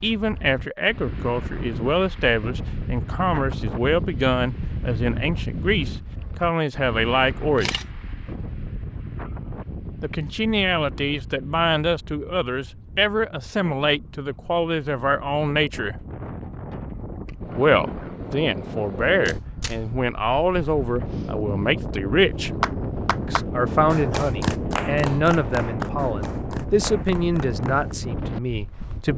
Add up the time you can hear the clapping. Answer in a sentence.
You can hear the clapping for 5 seconds altogether.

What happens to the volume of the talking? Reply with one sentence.
The loudness of the talking stays about the same.